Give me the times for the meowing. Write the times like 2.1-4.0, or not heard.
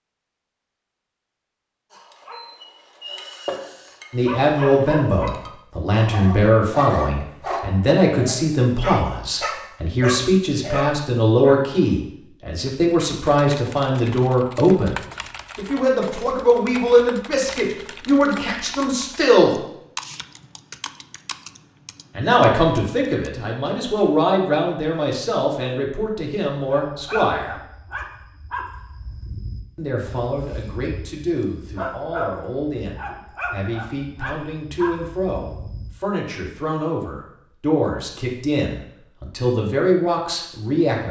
not heard.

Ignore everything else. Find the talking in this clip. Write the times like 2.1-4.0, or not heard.
4.1-14.9, 15.6-19.6, 22.1-27.6, 29.8-41.0.